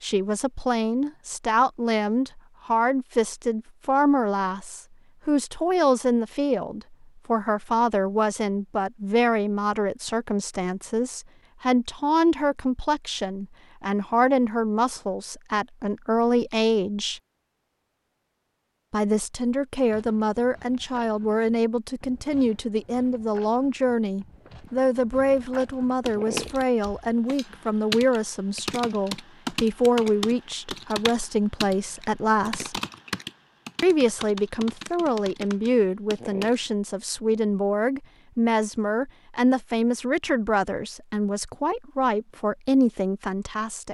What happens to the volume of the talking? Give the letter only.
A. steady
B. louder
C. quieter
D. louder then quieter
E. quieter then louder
A.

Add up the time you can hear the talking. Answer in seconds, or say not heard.
41 s.